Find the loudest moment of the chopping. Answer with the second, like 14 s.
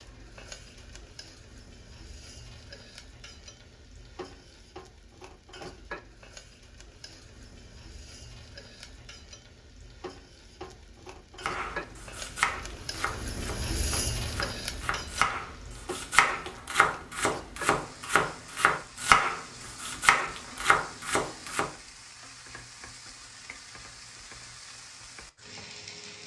19 s.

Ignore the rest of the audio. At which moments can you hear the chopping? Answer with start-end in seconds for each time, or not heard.
11.4-21.7.